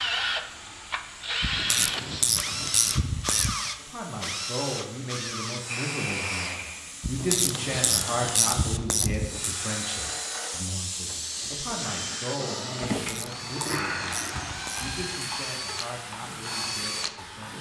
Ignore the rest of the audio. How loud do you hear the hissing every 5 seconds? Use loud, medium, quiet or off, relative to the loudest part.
medium, loud, loud, medium.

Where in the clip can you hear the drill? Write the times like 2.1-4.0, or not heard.
0.0-17.5.